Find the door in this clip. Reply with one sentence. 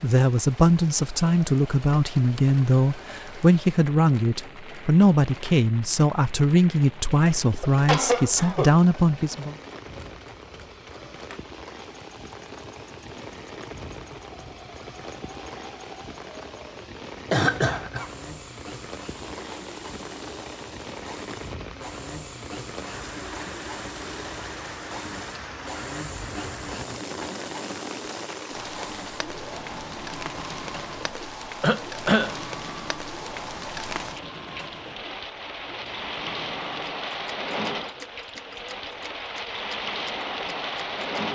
The door can't be heard in this clip.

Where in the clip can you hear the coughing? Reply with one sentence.
You can hear the coughing from 7.6 to 8.8 s, from 17.2 to 18.1 s and from 31.6 to 32.4 s.